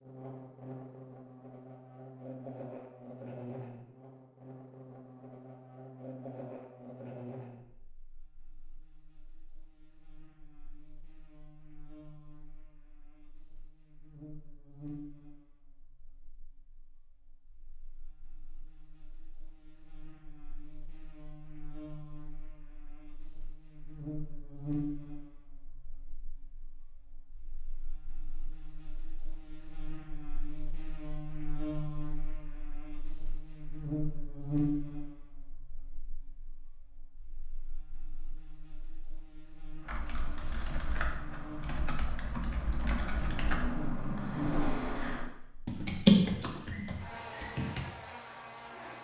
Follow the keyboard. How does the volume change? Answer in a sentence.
The volume of the keyboard goes up.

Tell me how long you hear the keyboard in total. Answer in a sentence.
The keyboard can be heard for 8 seconds in total.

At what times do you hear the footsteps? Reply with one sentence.
You can't hear the footsteps here.